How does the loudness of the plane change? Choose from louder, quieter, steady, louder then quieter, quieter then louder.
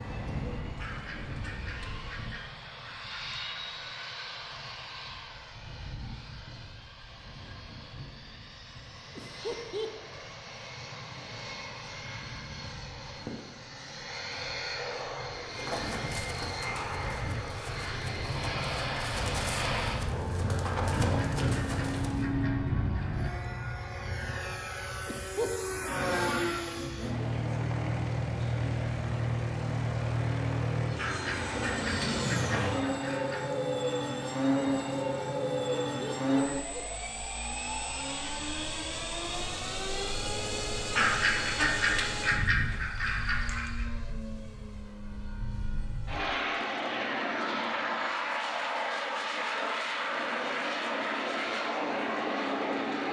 louder.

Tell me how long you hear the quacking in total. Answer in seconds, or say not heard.
11 s.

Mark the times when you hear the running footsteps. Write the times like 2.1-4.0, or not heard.
15.6-22.2.